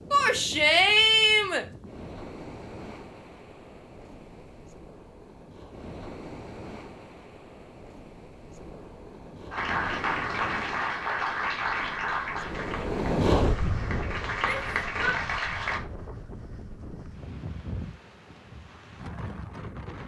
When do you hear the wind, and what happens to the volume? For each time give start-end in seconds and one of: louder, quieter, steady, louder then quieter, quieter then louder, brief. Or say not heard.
0.0-20.0 louder then quieter.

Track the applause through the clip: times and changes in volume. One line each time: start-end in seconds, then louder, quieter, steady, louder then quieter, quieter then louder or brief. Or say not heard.
9.5-15.8 quieter then louder.